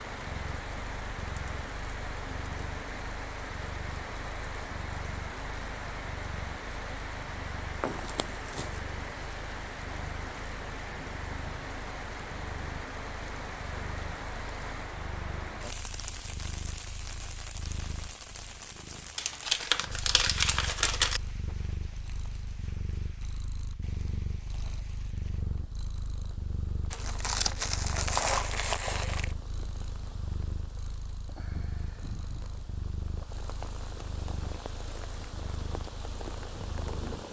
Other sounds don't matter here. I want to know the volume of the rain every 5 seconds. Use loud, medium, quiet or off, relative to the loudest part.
loud, loud, loud, loud, quiet, quiet, medium, loud.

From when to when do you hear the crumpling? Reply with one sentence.
You can hear the crumpling from 7.8 to 8.8 s, from 19.1 to 21.2 s and from 26.9 to 29.4 s.